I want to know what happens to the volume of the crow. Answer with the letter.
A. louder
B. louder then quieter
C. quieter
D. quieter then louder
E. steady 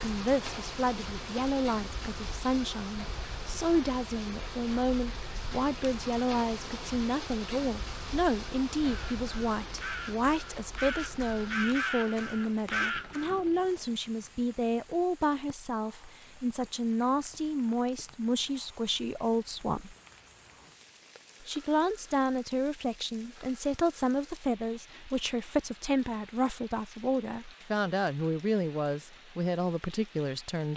A.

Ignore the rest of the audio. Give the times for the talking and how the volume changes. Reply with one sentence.
The talking can be heard from 0.0 to 19.9 s, at a steady volume; and from 21.4 to 30.7 s, at a steady volume.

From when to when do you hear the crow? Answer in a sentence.
The crow can be heard from 8.8 to 13.3 s.